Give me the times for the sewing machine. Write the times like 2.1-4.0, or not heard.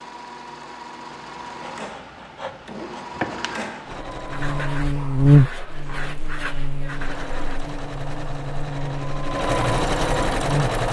0.0-4.8, 6.8-10.8.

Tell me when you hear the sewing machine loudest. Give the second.
10 s.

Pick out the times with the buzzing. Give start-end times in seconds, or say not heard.
4.2-10.8.